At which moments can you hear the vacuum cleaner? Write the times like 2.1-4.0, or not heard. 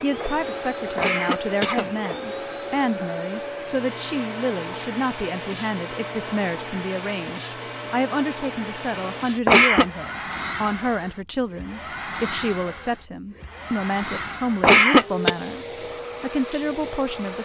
0.0-17.4.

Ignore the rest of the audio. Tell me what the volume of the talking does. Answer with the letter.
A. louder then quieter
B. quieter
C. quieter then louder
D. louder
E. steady
E.